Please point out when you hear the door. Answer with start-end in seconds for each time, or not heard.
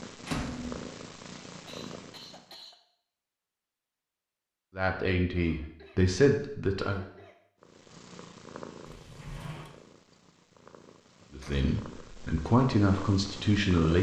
0.2-0.8, 8.8-9.7.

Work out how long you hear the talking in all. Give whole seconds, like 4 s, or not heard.
5 s.